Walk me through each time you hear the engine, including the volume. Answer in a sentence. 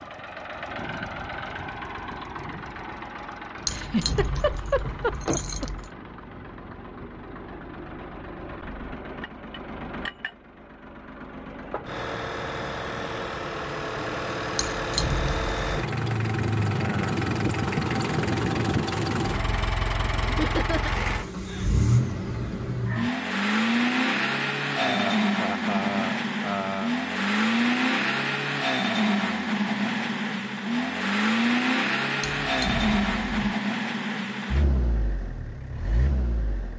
The engine can be heard from 0.0 to 36.7 s, getting louder.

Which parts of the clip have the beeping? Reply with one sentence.
The beeping can't be heard in this clip.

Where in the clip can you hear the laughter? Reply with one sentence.
You can hear the laughter from 3.6 to 5.7 s, from 20.2 to 21.8 s and from 24.8 to 26.9 s.